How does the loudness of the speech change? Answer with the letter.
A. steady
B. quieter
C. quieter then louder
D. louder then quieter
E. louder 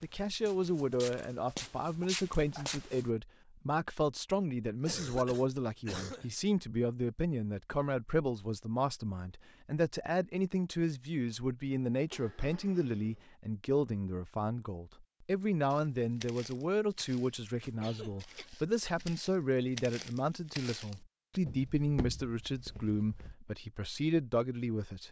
A.